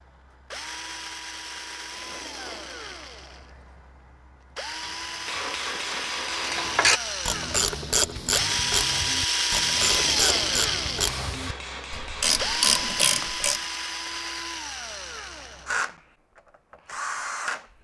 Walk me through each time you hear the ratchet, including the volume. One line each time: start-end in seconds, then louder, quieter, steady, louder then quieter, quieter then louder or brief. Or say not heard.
6.4-13.6 quieter then louder.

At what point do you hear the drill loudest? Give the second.
10 s.